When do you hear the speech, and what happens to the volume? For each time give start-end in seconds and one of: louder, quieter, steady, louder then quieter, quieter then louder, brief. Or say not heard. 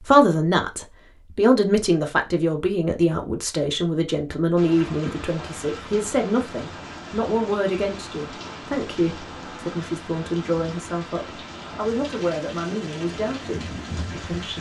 0.0-14.5 quieter.